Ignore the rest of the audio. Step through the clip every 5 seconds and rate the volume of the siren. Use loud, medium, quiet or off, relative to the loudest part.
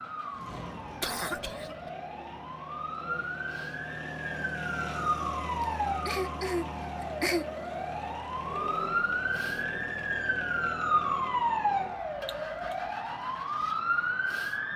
medium, loud, loud.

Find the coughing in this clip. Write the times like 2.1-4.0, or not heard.
1.0-1.8, 5.6-7.5, 12.2-12.8.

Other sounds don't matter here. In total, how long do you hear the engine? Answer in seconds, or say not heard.
15 s.